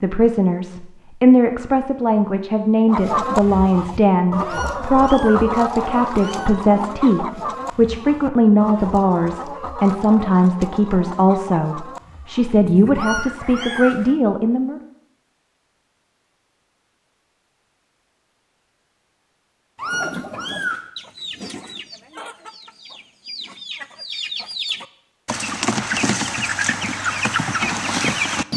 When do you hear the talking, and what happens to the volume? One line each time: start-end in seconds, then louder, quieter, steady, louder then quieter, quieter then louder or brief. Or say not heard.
0.0-14.8 steady.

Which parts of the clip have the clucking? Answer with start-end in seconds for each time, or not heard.
2.9-14.2, 19.8-28.5.